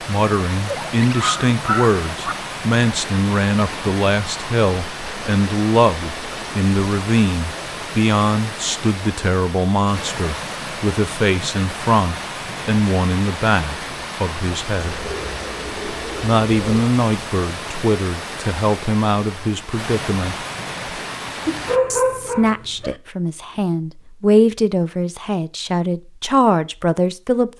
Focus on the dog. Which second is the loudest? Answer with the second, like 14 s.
22 s.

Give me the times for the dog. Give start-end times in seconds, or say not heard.
0.7-2.4, 21.4-22.9.